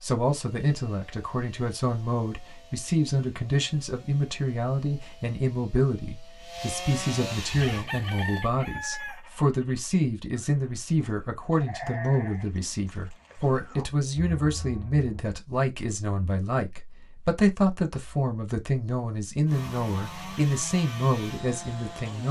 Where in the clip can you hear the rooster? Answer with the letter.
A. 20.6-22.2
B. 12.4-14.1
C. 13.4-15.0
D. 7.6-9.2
D.